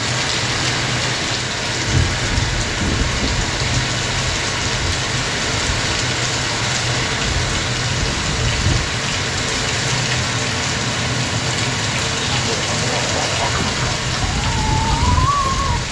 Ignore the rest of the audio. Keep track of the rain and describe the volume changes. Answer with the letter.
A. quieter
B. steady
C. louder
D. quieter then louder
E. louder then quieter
B.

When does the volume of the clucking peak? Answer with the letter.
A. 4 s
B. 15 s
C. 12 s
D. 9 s
B.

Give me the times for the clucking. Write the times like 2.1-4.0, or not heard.
12.3-15.8.